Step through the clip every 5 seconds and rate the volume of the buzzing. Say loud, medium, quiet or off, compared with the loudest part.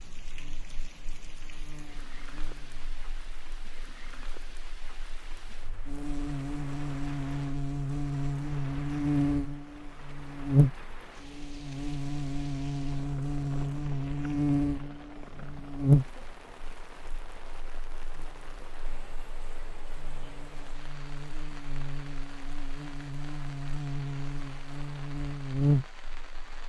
quiet, loud, loud, loud, medium, loud.